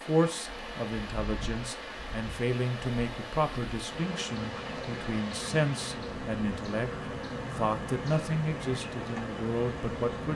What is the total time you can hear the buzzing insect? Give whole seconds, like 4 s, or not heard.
10 s.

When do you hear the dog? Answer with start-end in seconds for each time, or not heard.
not heard.